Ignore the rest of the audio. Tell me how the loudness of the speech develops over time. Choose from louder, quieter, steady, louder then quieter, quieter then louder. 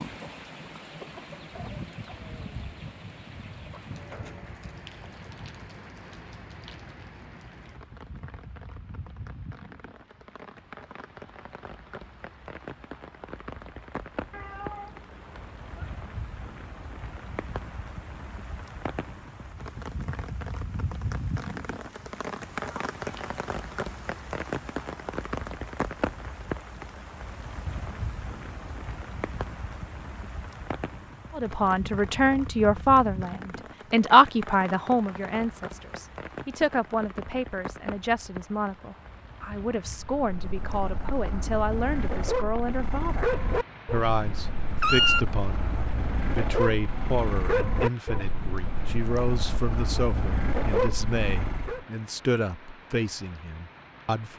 quieter.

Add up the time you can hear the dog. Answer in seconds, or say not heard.
12 s.